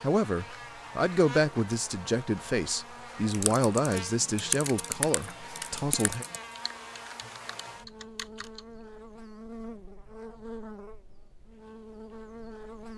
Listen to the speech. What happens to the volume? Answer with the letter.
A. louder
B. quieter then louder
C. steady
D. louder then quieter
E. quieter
E.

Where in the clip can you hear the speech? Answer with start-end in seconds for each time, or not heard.
0.0-6.2.